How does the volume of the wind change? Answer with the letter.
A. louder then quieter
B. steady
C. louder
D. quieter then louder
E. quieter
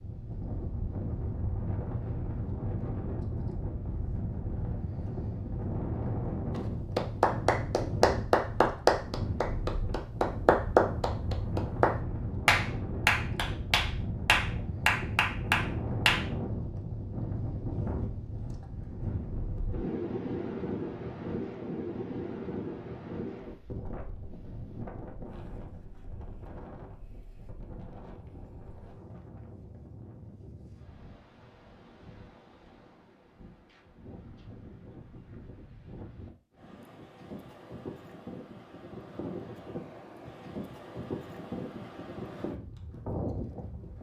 D.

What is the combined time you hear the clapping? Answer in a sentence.
The clapping can be heard for 10 seconds in total.